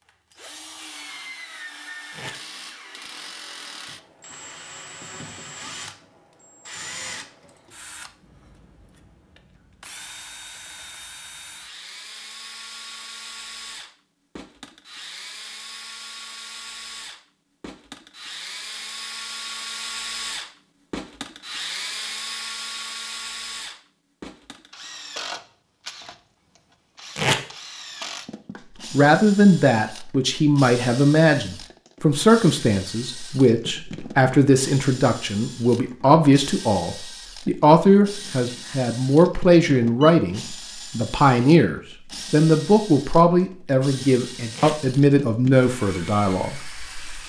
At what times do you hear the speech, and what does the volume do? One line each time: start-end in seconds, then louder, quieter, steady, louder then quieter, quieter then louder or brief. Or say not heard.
28.9-47.2 steady.